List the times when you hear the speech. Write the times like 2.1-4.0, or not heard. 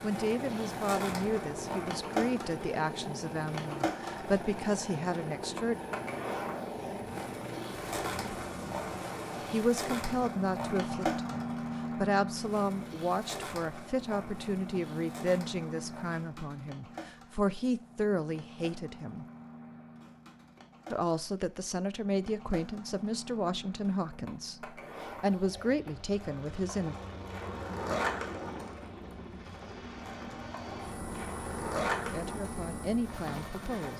0.0-5.8, 9.5-19.2, 20.9-26.9, 32.0-33.9.